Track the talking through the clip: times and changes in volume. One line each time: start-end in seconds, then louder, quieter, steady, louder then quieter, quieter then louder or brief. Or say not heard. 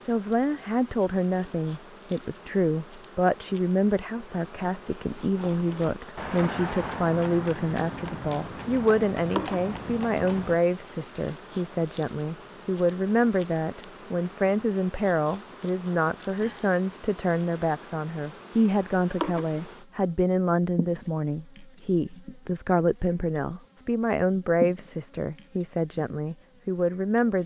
0.1-27.4 steady.